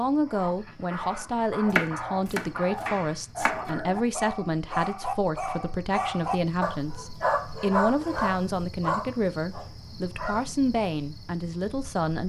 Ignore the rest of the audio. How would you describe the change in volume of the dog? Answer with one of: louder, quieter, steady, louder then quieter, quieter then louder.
louder.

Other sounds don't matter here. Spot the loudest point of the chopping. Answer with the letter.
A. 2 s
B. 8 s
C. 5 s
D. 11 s
A.